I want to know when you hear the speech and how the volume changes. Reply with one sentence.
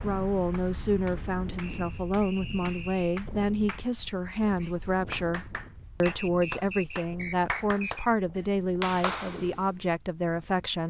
The speech can be heard from 0.0 to 10.8 s, at a steady volume.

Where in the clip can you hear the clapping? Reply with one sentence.
You can hear the clapping from 0.5 to 9.7 s.